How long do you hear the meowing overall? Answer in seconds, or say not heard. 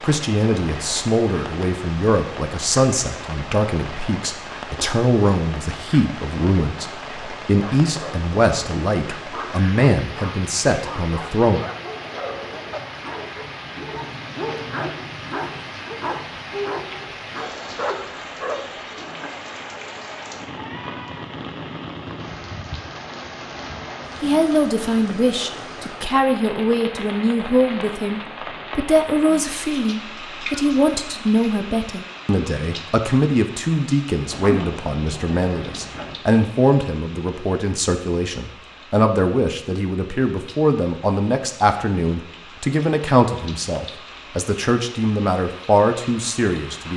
3 s.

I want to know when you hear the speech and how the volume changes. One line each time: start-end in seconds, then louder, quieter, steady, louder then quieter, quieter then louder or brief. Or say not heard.
0.0-11.7 steady
24.2-46.9 steady.